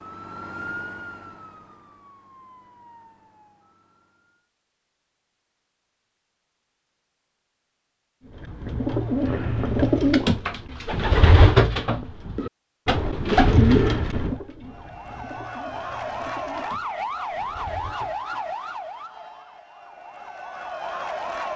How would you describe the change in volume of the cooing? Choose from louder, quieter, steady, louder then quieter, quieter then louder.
quieter.